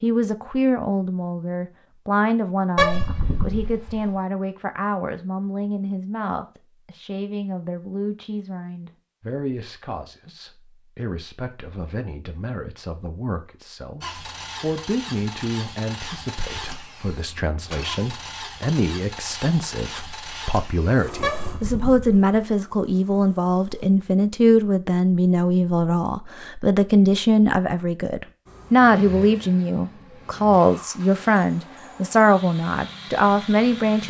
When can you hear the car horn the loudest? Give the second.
3 s.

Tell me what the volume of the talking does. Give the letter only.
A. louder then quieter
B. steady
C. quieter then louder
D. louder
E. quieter
C.